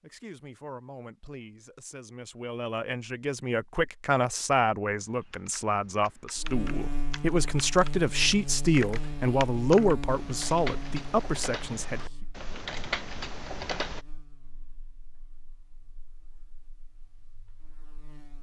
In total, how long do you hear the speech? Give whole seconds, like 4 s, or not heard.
12 s.